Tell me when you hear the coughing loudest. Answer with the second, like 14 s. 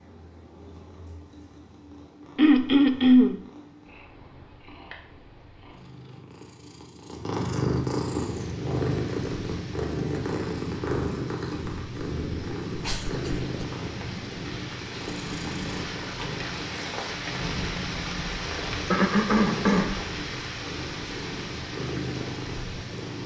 3 s.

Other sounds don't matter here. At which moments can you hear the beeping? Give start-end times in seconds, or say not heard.
not heard.